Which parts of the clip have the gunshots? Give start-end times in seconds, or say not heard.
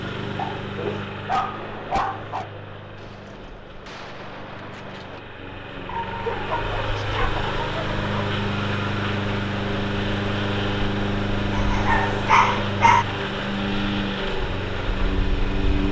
1.5-5.2.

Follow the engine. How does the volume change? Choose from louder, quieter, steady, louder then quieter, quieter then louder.
louder.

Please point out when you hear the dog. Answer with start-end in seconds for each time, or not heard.
0.3-2.5, 5.8-8.1, 11.5-13.1.